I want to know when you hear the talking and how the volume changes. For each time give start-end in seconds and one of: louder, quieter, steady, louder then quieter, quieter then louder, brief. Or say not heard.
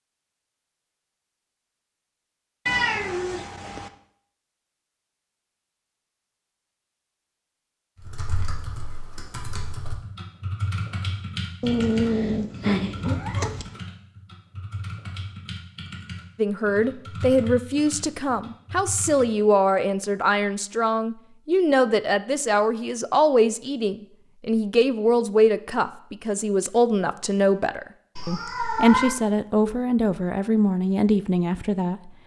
16.4-32.1 steady.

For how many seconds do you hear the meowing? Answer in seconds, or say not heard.
4 s.